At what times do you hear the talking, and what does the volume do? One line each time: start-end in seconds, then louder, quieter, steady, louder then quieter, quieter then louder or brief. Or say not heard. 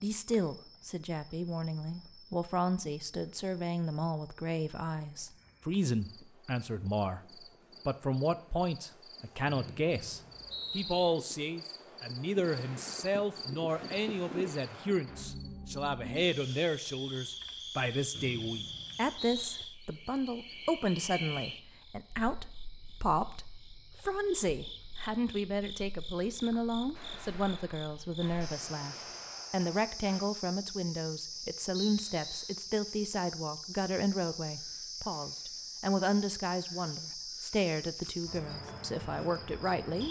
0.0-40.0 steady.